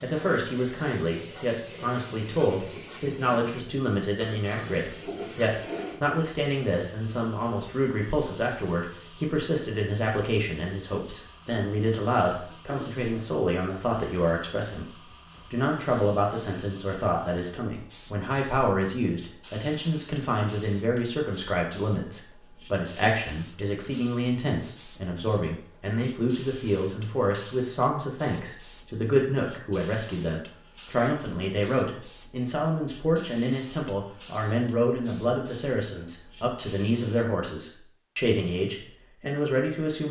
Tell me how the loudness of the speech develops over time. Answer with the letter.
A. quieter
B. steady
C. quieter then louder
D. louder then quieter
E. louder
B.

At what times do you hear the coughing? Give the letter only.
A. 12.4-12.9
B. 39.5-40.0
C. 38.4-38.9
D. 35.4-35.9
A.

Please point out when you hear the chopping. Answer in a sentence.
The chopping can't be heard in this clip.